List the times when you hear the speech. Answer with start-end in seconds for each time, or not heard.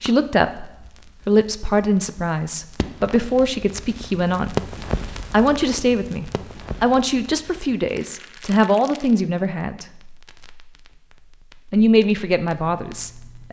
0.0-4.7, 5.3-9.8, 11.7-13.4.